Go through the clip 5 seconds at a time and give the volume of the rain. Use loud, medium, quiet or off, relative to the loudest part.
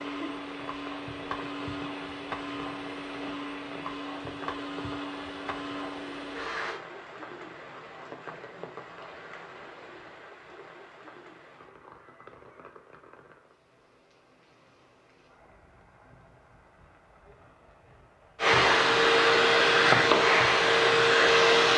loud, loud, medium, quiet, off.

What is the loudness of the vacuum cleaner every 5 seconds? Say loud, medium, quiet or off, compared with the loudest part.
quiet, quiet, off, loud, loud.